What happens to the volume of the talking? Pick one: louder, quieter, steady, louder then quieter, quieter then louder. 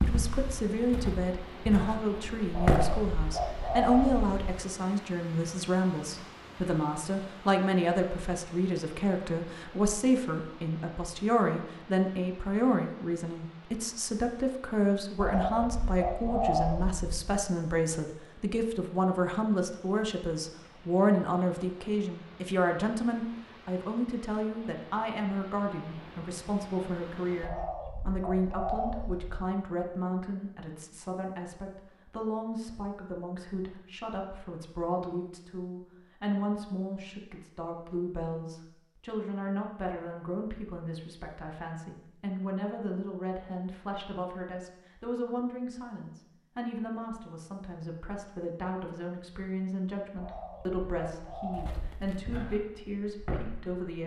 quieter.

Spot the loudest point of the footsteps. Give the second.
3 s.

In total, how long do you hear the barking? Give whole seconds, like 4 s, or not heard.
not heard.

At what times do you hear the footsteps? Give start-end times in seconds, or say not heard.
0.0-3.1, 51.5-53.9.